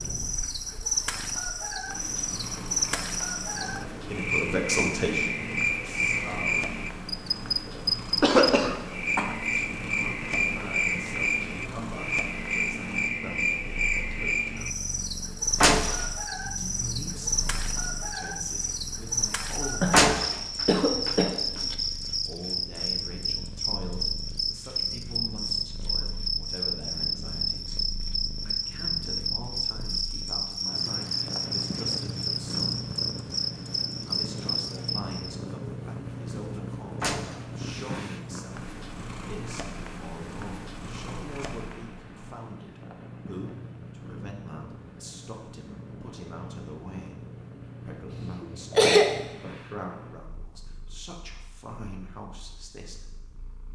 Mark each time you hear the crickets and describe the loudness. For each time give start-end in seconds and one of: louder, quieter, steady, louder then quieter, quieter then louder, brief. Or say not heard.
0.0-35.4 steady.